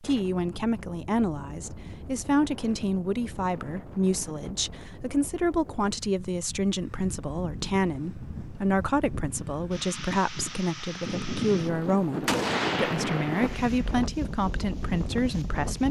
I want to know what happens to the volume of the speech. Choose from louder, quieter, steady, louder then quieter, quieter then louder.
steady.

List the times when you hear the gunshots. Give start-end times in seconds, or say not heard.
12.2-14.1.